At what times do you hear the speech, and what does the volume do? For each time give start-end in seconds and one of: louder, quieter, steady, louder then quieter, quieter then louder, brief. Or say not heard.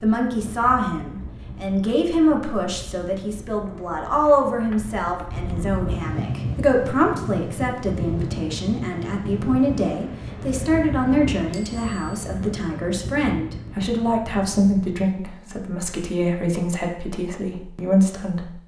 0.0-18.6 steady.